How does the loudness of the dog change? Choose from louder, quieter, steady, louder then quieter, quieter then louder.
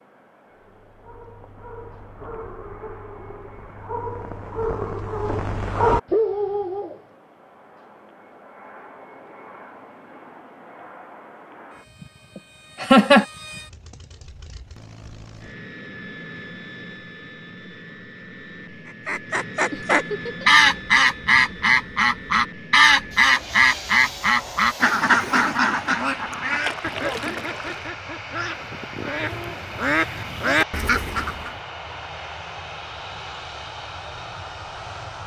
louder.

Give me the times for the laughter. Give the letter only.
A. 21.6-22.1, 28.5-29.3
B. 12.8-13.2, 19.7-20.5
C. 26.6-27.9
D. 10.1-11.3
B.